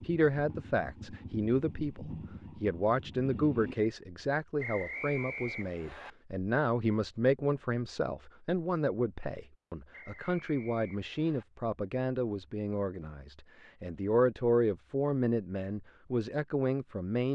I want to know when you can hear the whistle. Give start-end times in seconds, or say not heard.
4.5-6.1, 9.9-11.4.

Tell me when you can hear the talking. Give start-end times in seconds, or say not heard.
0.0-17.3.